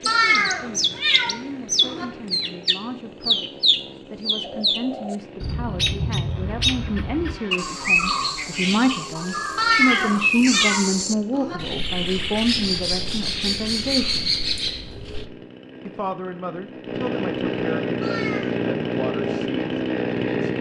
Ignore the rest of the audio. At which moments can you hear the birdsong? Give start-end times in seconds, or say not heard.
0.0-15.3.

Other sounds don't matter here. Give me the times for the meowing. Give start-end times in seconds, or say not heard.
0.1-2.0, 9.6-11.6, 18.0-18.6.